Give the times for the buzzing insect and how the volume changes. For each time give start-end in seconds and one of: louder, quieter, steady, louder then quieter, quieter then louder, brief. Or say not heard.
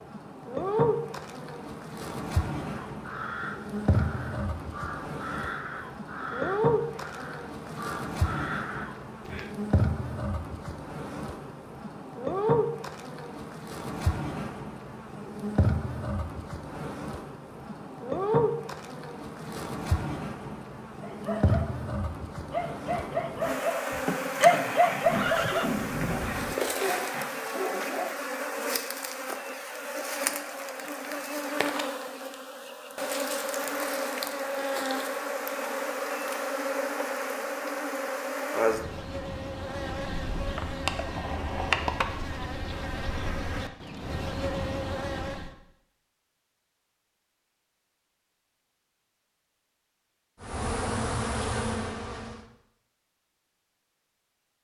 0.0-45.5 steady
50.4-52.5 brief.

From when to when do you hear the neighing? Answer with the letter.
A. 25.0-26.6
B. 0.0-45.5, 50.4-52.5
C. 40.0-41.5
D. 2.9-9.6
A.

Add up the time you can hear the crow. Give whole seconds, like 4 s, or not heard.
7 s.